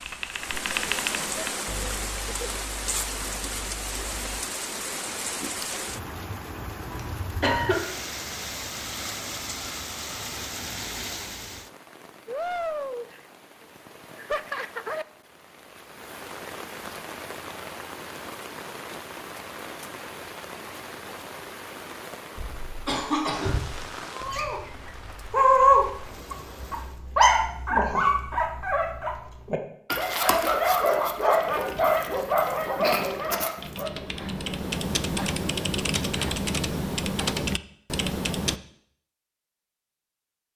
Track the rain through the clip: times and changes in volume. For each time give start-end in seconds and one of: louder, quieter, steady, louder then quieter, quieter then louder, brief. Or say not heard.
0.0-27.0 quieter.